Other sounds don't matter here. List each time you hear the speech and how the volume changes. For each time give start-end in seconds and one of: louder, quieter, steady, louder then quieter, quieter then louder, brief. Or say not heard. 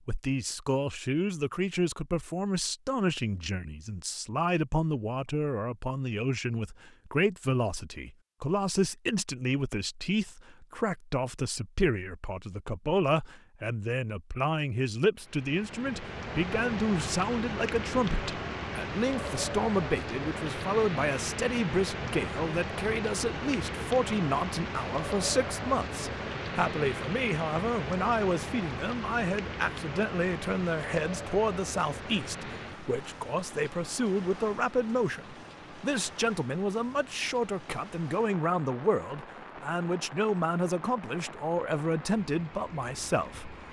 0.1-43.6 steady.